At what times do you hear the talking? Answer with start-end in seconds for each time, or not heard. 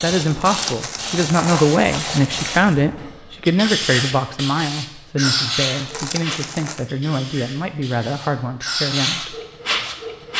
0.0-9.3.